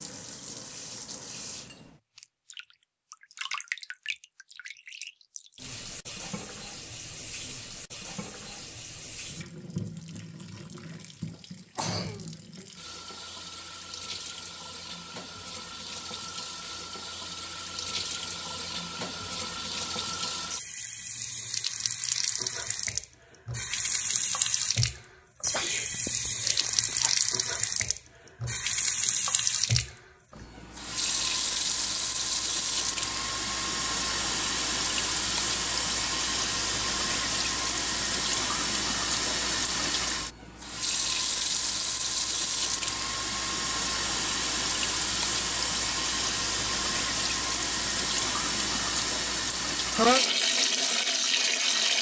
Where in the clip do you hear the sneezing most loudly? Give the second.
50 s.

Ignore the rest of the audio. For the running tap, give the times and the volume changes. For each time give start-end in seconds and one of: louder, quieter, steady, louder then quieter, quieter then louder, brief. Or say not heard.
0.0-51.9 louder.